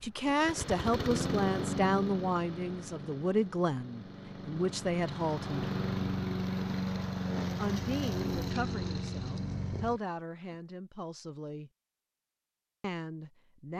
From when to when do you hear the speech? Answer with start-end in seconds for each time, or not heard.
0.0-5.7, 7.5-11.7, 12.8-13.7.